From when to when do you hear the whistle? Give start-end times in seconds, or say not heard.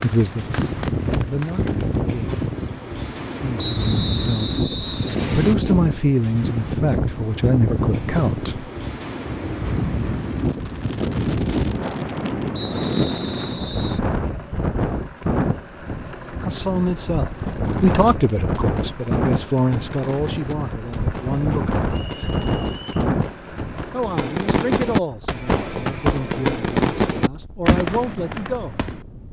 3.5-5.5, 12.5-14.0, 21.9-23.1.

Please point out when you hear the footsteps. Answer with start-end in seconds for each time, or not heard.
not heard.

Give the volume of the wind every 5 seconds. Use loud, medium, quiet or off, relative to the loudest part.
loud, loud, loud, loud, loud, quiet.